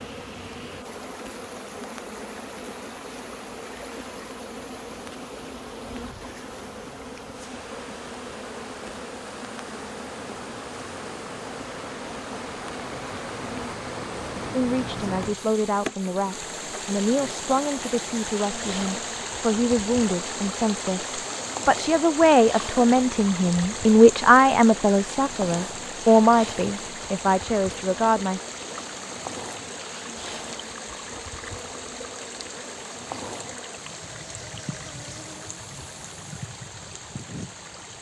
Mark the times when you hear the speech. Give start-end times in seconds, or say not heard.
14.5-28.4.